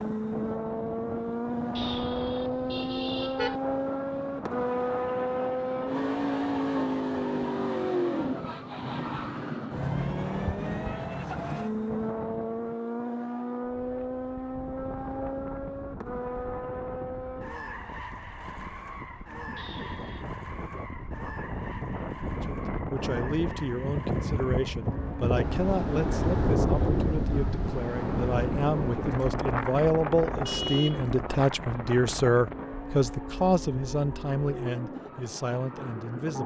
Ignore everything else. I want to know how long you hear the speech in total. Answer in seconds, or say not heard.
14 s.